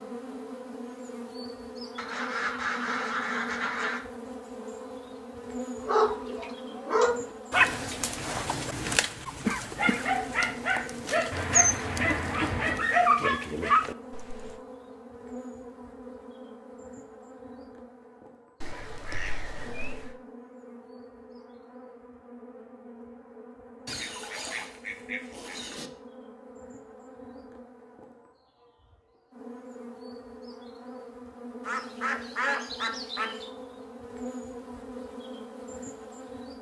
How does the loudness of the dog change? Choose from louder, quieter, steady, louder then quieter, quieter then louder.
quieter then louder.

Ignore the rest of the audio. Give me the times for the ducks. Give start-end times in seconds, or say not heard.
1.9-4.0, 11.3-12.9, 18.6-20.1, 23.9-25.9, 31.6-33.5.